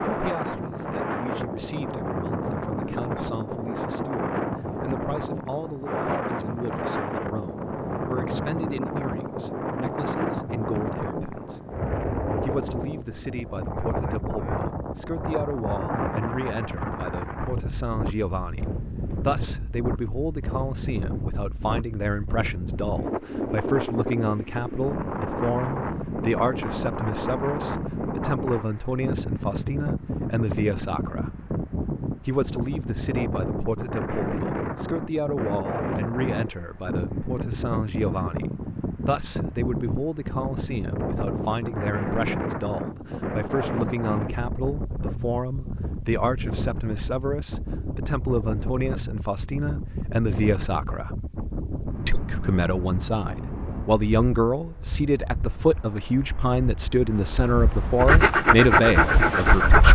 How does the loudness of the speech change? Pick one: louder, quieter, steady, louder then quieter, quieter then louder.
louder.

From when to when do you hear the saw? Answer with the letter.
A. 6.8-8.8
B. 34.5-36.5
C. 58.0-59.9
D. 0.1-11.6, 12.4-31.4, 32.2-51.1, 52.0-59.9
C.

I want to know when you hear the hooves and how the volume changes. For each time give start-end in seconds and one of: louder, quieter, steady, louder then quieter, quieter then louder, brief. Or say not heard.
not heard.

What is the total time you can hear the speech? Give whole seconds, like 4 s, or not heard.
57 s.